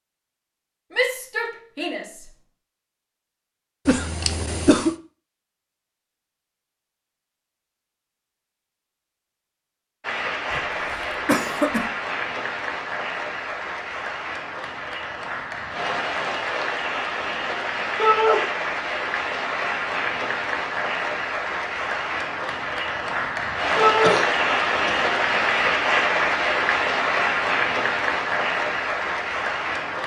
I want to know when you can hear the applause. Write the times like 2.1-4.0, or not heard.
10.0-30.0.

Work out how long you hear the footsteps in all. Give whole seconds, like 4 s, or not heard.
not heard.